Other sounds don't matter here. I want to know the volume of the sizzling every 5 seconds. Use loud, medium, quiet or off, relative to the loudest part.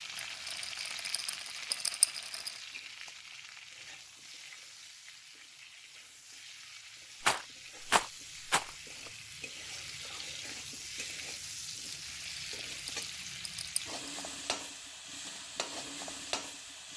loud, medium, loud, loud.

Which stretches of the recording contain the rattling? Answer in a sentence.
The rattling can be heard from 0.1 to 2.5 s, from 7.2 to 8.8 s and from 11.9 to 14.0 s.